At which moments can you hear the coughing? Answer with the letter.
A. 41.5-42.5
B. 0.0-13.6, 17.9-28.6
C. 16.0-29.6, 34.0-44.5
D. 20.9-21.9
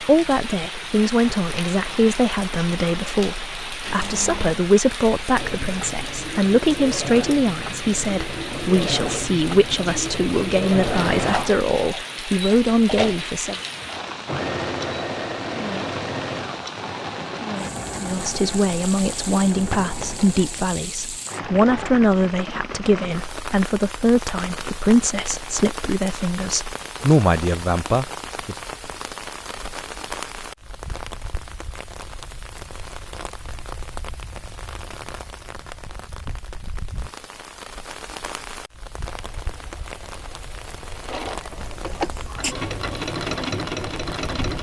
A.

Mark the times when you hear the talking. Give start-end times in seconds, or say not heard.
0.0-13.6, 17.9-28.6.